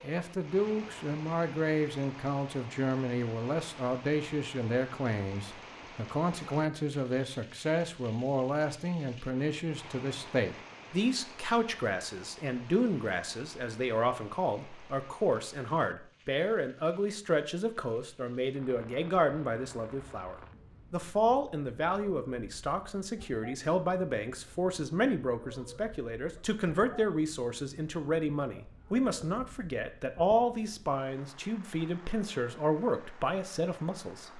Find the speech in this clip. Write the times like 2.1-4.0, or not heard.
0.0-34.3.